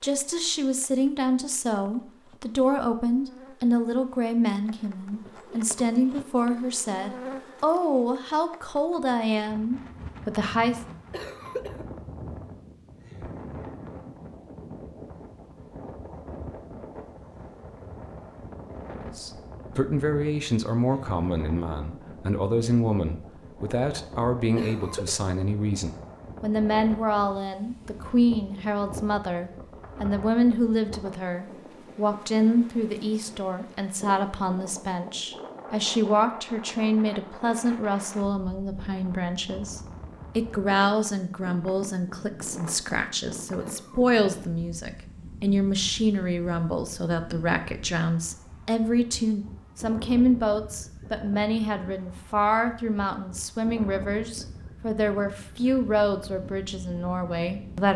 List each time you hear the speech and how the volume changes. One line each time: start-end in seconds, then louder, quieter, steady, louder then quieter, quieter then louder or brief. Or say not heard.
0.0-10.8 steady
19.0-57.9 steady.